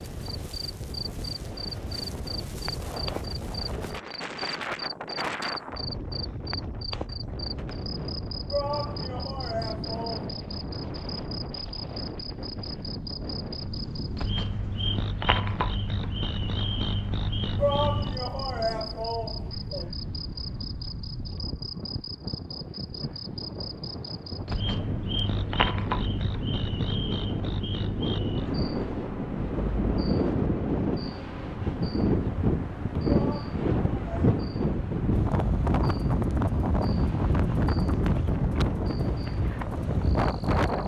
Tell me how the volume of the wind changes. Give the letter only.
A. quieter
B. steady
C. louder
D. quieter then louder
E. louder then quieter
C.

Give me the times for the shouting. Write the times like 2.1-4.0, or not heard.
8.5-10.3, 17.6-19.9, 33.0-34.4.